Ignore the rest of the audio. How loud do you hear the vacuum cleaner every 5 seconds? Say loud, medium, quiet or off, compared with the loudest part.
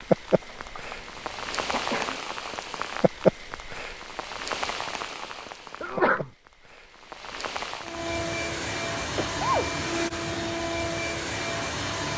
off, loud, loud.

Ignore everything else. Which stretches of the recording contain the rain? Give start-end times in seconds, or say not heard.
0.0-8.0.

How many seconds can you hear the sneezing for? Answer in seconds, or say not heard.
3 s.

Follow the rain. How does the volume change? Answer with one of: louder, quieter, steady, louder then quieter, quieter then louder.
louder then quieter.